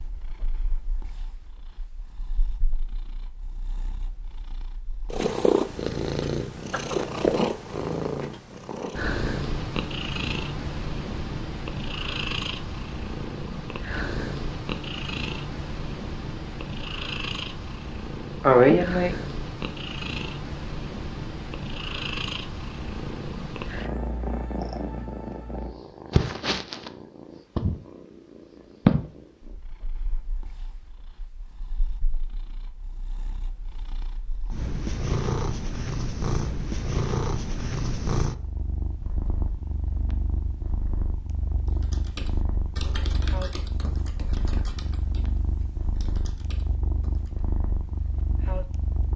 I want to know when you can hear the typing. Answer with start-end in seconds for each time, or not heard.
41.6-47.5.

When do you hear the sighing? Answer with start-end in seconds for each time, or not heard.
18.4-19.1.